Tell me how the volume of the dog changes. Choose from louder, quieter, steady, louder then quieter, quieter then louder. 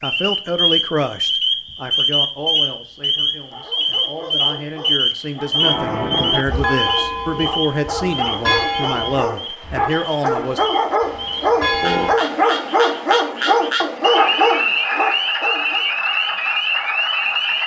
louder.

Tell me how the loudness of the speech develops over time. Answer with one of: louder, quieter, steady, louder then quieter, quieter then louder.
quieter then louder.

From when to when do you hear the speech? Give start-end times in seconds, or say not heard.
0.0-10.6.